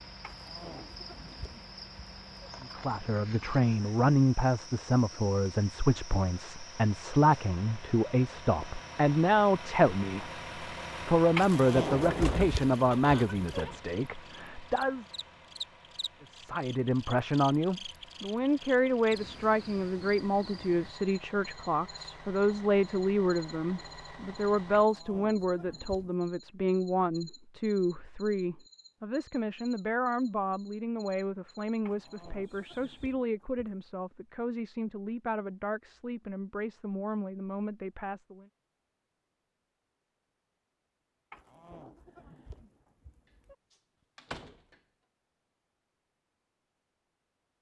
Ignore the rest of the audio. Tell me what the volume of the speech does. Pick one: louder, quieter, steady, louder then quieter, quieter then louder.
quieter.